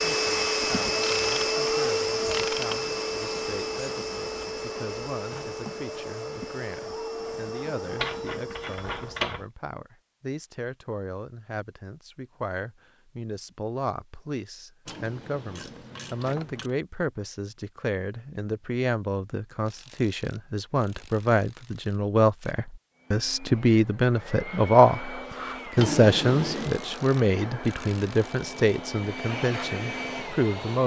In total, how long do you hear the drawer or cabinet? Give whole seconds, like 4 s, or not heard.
4 s.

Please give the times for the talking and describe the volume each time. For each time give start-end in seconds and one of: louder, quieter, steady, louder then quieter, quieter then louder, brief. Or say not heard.
0.1-30.8 louder.